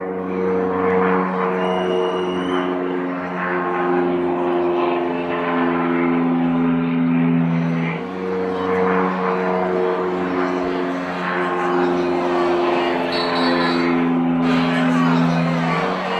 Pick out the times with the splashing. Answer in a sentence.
The splashing can't be heard in this clip.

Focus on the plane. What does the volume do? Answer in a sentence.
The volume of the plane stays about the same.